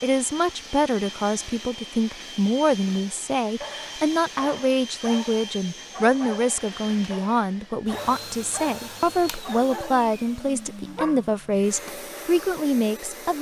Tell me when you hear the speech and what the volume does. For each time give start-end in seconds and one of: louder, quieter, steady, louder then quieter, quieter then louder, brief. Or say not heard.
0.0-13.3 steady.